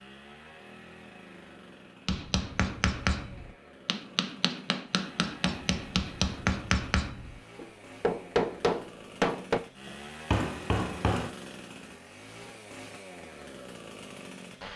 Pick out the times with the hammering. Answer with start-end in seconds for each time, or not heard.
2.0-11.3.